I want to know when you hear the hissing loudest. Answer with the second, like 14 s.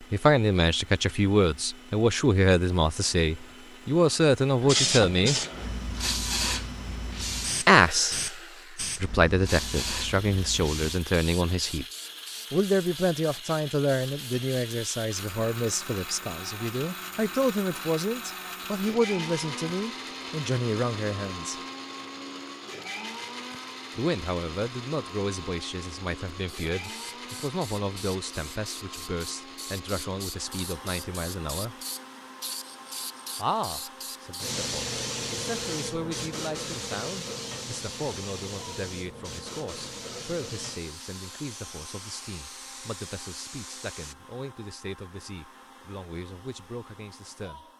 5 s.